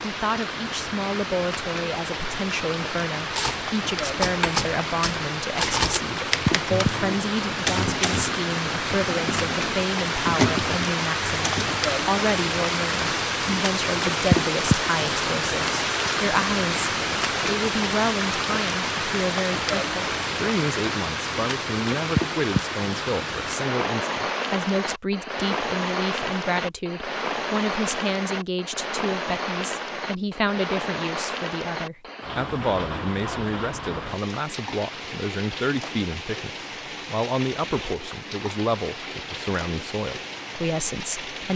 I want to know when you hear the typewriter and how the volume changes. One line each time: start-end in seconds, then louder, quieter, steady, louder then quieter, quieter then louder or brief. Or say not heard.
3.3-11.8 quieter then louder.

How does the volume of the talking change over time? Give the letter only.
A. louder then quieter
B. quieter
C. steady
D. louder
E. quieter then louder
C.